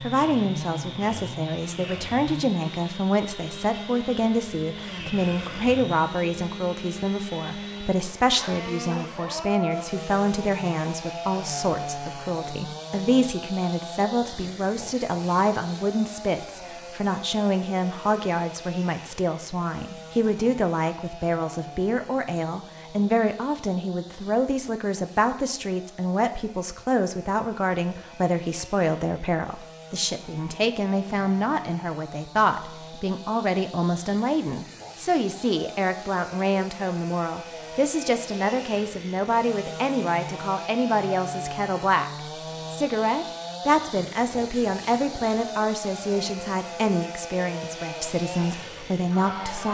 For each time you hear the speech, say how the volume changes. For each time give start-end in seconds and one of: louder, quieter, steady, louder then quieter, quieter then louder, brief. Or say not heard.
0.0-49.6 steady.